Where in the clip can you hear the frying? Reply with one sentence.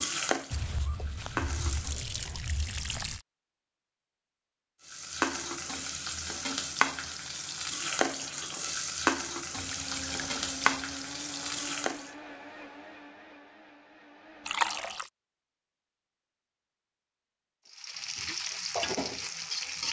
The frying can be heard from 0.0 to 2.0 s, from 4.8 to 12.1 s and from 17.6 to 19.8 s.